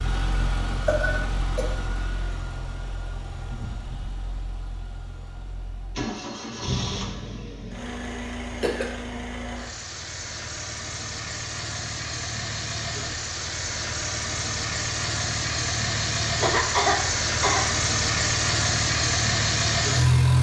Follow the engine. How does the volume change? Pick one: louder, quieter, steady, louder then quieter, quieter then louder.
louder.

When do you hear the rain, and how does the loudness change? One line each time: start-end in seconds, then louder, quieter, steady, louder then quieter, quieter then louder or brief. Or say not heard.
not heard.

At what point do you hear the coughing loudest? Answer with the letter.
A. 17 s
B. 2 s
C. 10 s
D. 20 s
A.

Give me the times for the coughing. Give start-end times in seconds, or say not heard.
0.7-1.6, 8.6-9.0, 16.4-17.6.